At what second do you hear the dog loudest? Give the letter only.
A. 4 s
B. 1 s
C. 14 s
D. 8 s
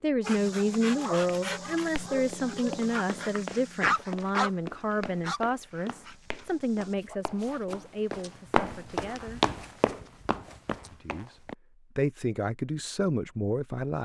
A.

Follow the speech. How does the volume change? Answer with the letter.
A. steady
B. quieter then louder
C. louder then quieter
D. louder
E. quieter
B.